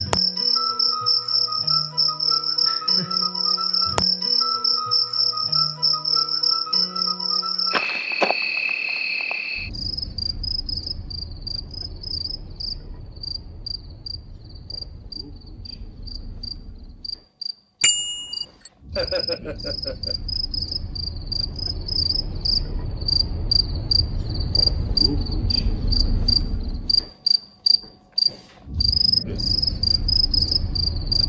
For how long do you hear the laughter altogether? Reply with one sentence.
The laughter can be heard for 2 seconds in total.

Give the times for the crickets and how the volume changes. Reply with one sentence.
The crickets can be heard from 0.0 to 31.2 s, getting quieter then louder.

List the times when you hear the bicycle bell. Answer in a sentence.
You can hear the bicycle bell from 17.8 to 18.7 s.